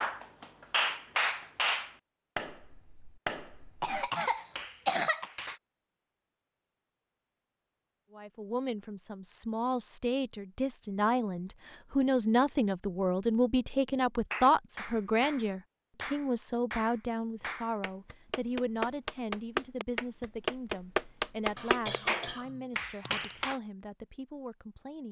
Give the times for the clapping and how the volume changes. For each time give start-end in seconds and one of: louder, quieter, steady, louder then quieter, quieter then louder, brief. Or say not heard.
0.0-5.6 quieter
14.3-23.6 louder.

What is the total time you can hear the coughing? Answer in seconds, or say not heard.
3 s.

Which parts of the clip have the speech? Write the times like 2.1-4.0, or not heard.
8.1-25.0.